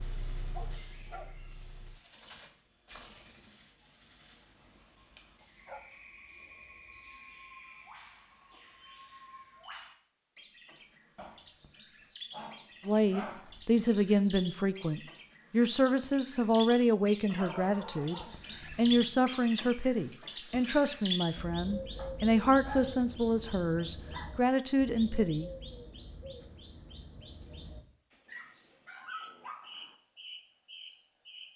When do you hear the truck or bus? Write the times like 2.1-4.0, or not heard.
0.0-2.0.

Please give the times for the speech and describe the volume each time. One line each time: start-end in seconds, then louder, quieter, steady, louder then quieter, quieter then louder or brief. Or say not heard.
12.8-25.5 steady.